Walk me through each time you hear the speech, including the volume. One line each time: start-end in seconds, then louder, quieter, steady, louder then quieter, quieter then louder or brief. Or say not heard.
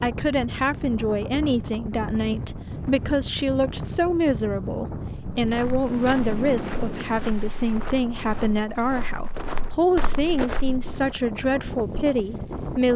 0.0-12.9 steady.